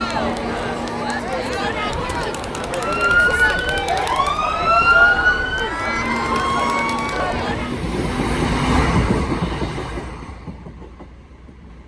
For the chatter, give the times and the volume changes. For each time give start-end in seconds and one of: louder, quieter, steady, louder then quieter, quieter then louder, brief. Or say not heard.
0.0-7.8 steady.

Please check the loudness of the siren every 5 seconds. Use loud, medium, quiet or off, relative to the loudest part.
loud, loud, off.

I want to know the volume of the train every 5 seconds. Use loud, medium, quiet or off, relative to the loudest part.
medium, loud, quiet.